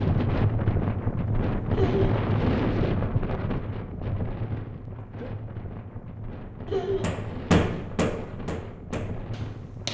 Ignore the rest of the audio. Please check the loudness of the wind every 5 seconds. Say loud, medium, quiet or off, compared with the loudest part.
loud, medium.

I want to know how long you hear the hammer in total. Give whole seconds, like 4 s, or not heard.
3 s.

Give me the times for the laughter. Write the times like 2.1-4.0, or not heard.
1.7-2.2, 6.7-7.2.